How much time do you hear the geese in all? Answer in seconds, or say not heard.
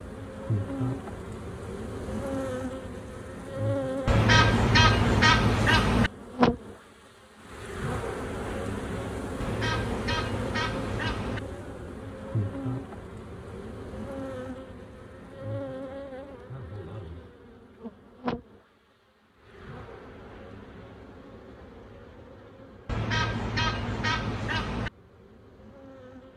6 s.